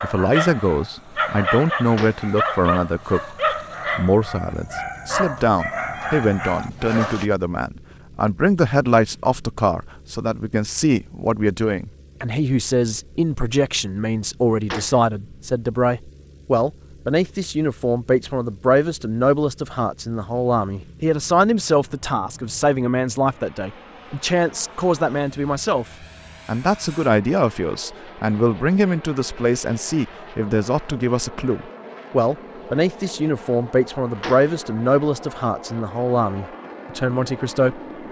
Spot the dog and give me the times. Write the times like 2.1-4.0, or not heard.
0.0-7.2.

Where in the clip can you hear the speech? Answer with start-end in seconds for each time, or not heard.
0.0-3.4, 4.0-25.9, 26.4-37.8.